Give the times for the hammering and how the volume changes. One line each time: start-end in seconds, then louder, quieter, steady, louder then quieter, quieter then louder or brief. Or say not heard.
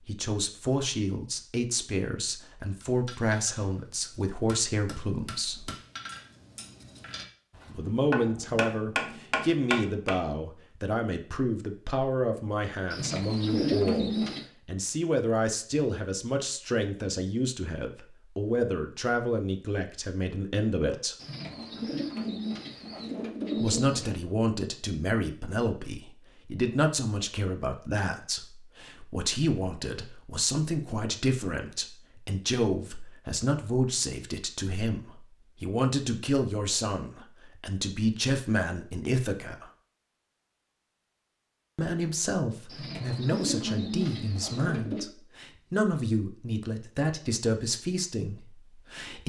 2.8-10.2 louder.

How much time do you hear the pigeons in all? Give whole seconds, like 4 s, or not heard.
7 s.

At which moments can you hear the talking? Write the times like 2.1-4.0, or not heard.
0.0-5.7, 7.8-21.1, 23.6-39.7, 41.8-49.2.